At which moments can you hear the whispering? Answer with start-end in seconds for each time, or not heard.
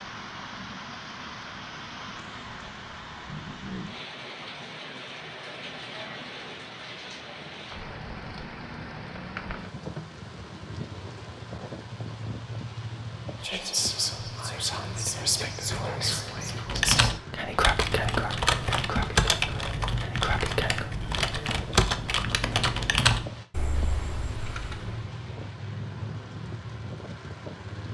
13.4-20.9.